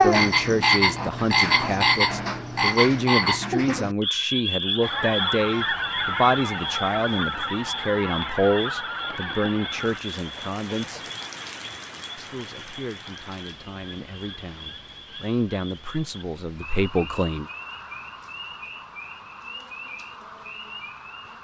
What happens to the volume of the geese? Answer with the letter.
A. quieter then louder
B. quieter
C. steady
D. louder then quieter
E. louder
B.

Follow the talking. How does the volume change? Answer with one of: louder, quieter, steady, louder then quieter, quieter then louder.
quieter then louder.